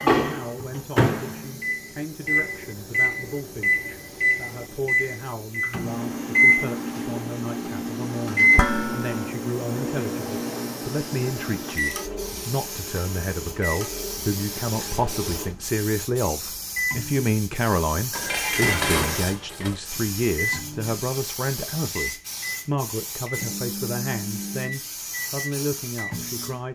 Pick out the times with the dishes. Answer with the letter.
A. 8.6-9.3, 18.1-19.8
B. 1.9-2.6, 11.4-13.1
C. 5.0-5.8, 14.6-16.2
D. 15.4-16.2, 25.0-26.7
A.